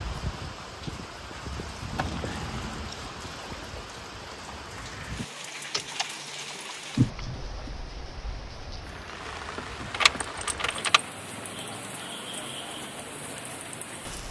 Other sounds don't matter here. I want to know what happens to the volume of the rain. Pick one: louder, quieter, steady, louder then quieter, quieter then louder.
steady.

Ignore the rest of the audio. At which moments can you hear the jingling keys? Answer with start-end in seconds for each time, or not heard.
1.9-3.0, 5.7-7.7, 9.9-11.1.